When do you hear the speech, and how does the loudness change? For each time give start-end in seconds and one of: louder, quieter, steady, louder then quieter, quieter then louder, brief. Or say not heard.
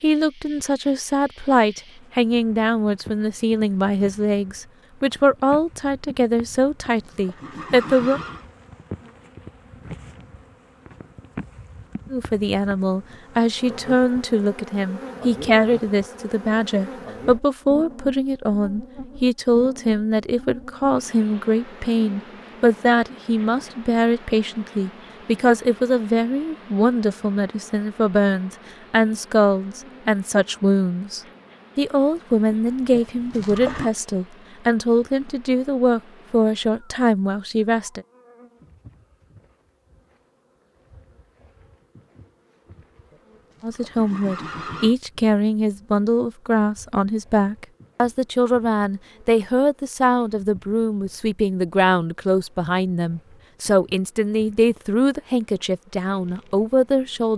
0.0-8.2 steady
12.1-38.0 steady
43.6-57.3 steady.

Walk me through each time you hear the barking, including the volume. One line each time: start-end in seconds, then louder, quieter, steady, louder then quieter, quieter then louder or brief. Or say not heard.
not heard.